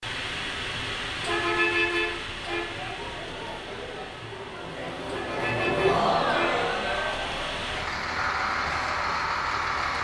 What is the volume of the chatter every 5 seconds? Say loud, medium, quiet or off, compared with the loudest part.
medium, loud.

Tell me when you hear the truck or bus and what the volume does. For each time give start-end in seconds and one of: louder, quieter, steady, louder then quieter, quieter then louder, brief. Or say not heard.
0.0-10.0 quieter then louder.